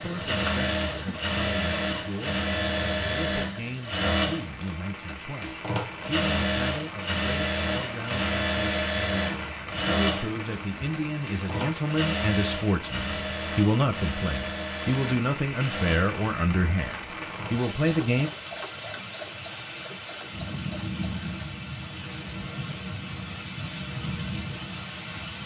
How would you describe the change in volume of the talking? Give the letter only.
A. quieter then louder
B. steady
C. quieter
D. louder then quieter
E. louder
E.